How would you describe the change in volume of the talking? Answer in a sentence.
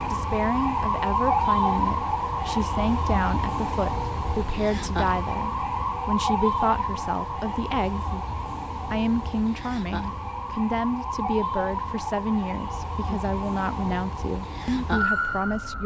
The volume of the talking stays about the same.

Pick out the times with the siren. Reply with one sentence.
You can hear the siren from 0.0 to 15.8 s.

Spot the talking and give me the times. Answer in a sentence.
The talking can be heard from 0.1 to 8.1 s and from 8.9 to 15.8 s.